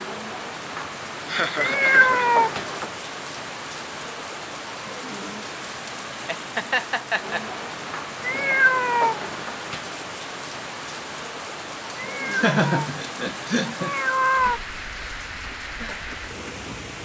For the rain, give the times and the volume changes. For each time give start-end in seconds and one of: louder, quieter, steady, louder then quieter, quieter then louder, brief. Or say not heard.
0.0-17.0 steady.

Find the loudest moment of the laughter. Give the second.
13 s.